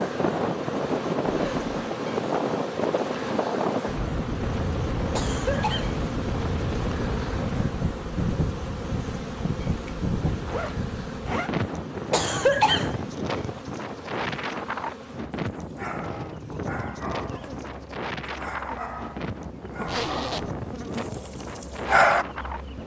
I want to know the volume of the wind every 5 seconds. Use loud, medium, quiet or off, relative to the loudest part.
loud, loud, loud, medium, medium.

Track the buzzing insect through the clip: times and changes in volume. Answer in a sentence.
The buzzing insect can be heard from 0.0 to 22.8 s, getting quieter.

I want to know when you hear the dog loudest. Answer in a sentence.
The volume of the dog peaks at 22 seconds.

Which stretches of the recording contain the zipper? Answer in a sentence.
The zipper can be heard from 1.2 to 1.7 s, from 9.8 to 11.6 s and from 19.9 to 20.5 s.